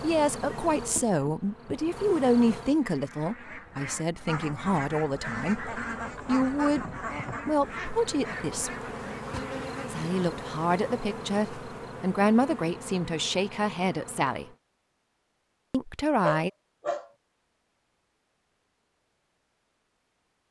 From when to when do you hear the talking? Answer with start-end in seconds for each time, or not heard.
0.0-6.8, 7.5-8.9, 9.9-14.4, 15.7-16.5.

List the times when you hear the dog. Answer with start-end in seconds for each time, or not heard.
16.2-17.1.